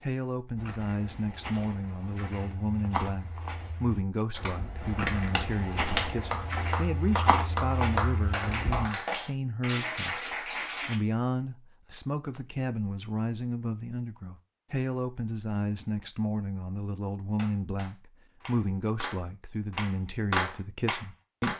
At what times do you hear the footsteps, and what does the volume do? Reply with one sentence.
You can hear the footsteps from 0.6 to 8.9 s, getting louder.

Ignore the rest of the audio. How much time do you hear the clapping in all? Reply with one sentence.
You can hear the clapping for 11 seconds altogether.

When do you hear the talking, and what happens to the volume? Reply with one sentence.
You can hear the talking from 0.0 to 21.5 s, at a steady volume.